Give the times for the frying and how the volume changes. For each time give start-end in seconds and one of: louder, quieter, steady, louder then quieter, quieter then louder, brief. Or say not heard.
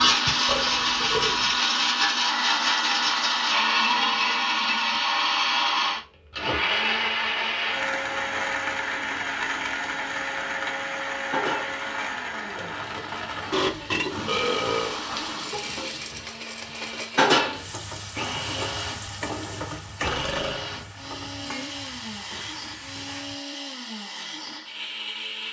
11.3-23.4 louder then quieter.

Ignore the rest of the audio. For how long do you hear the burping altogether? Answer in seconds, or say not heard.
3 s.